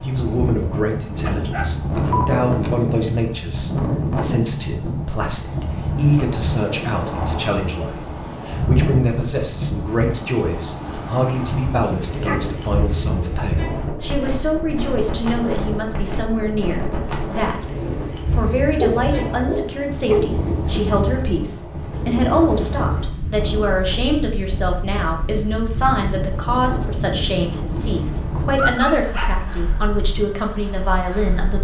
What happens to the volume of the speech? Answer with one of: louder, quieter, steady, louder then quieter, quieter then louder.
steady.